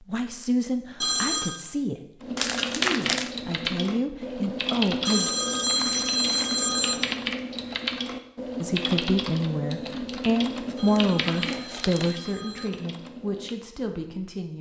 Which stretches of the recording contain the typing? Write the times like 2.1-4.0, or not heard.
2.2-13.6.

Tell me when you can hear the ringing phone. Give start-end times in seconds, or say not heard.
1.0-1.6, 5.0-7.0, 10.8-12.8.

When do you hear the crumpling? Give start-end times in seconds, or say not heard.
2.4-3.3, 5.7-6.7, 10.7-12.2.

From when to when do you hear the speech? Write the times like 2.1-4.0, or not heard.
0.0-5.3, 8.6-14.5.